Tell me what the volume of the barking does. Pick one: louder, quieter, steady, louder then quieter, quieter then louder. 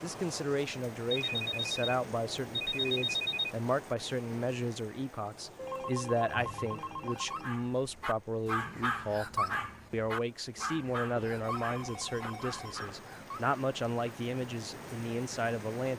louder then quieter.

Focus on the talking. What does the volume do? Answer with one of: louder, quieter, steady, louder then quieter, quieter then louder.
steady.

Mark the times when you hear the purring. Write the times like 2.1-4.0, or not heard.
not heard.